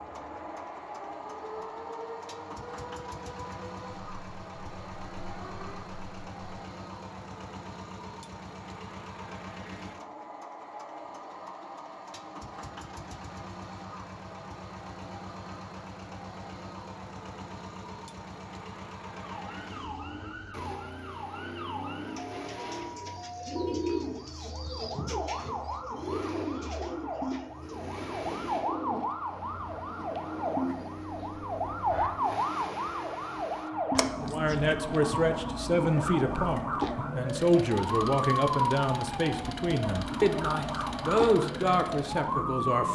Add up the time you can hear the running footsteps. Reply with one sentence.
The running footsteps can't be heard in this clip.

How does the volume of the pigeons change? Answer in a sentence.
The loudness of the pigeons goes down.